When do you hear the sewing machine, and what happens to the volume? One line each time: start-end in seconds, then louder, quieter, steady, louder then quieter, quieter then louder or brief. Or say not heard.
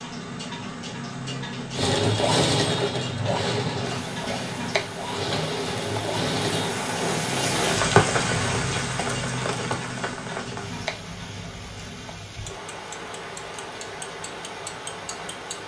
1.8-6.8 quieter then louder.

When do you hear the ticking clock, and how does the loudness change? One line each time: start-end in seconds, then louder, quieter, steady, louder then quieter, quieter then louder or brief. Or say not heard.
0.0-15.6 quieter.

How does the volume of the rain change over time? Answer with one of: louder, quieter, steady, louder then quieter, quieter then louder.
louder then quieter.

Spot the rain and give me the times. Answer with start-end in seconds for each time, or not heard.
3.8-15.6.